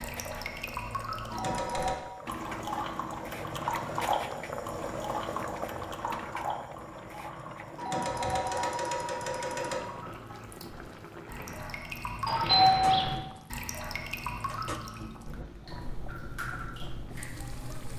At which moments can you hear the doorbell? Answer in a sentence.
You can hear the doorbell from 1.3 to 2.0 s, from 7.8 to 9.8 s and from 12.2 to 13.2 s.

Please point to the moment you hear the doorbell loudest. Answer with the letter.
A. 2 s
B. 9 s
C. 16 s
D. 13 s
D.